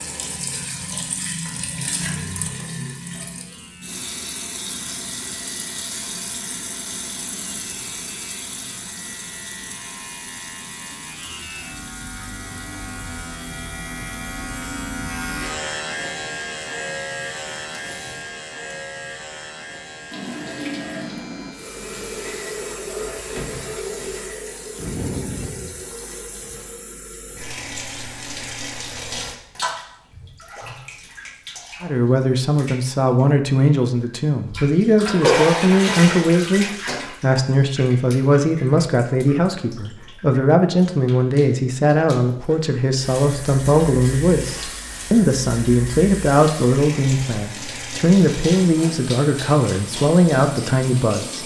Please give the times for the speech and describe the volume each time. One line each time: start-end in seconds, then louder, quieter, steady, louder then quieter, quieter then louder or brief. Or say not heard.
31.8-51.4 steady.